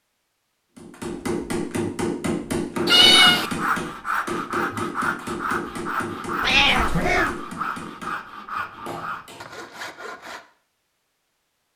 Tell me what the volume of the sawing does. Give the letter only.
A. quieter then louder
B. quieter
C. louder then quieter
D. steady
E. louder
B.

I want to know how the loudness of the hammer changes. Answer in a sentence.
The volume of the hammer goes down.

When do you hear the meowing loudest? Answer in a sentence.
The volume of the meowing peaks at 3 seconds.